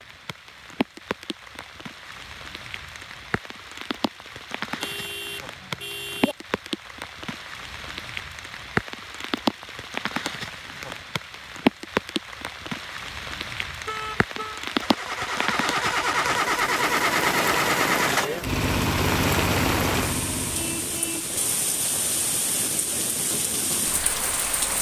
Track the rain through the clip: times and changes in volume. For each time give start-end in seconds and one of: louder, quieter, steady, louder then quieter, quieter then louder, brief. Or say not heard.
0.0-24.7 louder.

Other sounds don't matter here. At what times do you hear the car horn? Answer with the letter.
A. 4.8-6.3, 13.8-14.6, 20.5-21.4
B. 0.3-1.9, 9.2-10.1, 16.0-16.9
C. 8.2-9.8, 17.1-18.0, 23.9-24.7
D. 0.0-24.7
A.